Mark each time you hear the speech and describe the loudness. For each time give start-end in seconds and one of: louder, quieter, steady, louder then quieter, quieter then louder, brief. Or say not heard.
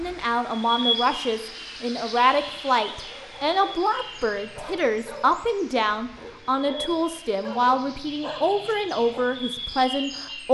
0.0-10.5 steady.